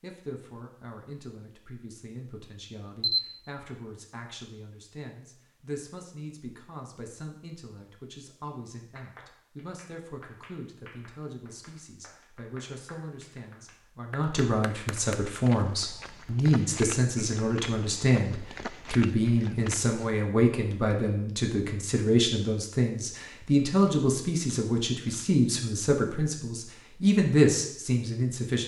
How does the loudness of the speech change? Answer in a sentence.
The loudness of the speech goes up.